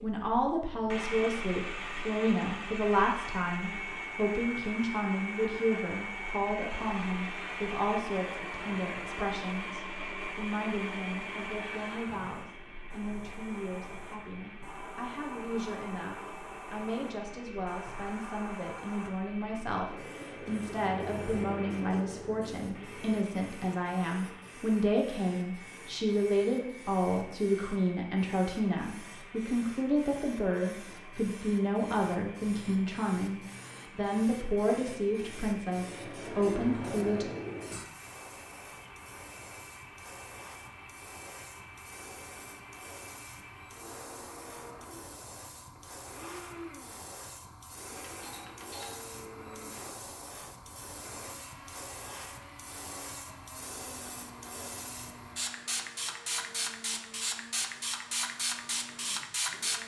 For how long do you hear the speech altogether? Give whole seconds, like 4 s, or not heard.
37 s.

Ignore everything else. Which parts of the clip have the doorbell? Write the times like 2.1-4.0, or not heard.
48.0-49.1.